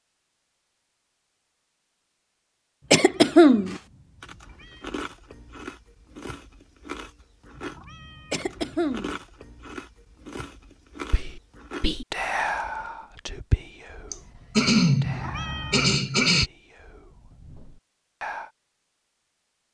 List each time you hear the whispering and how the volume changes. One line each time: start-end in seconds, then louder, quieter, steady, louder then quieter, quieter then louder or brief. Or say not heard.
11.1-18.5 quieter.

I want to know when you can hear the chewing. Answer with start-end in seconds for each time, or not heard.
3.6-12.9.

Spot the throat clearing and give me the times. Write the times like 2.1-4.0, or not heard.
2.9-3.8, 8.3-9.2, 14.1-16.5.